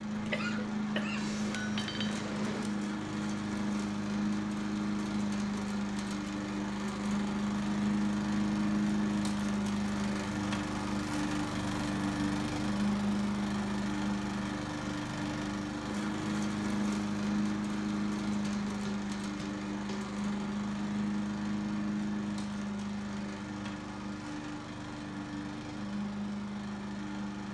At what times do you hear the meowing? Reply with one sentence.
You can't hear the meowing here.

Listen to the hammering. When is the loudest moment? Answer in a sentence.
The loudest moment of the hammering is at 2 seconds.